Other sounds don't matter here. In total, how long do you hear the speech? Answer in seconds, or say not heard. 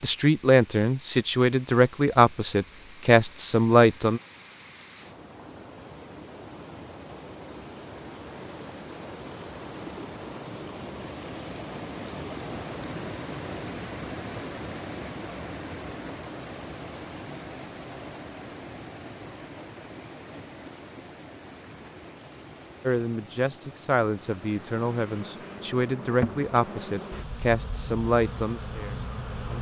11 s.